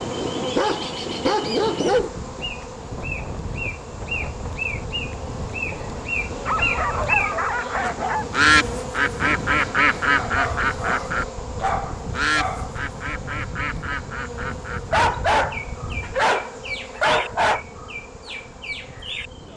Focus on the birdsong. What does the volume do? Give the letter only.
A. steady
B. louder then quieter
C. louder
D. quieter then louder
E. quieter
B.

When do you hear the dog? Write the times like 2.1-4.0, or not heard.
0.6-2.1, 6.5-8.2, 10.2-12.7, 14.9-17.6.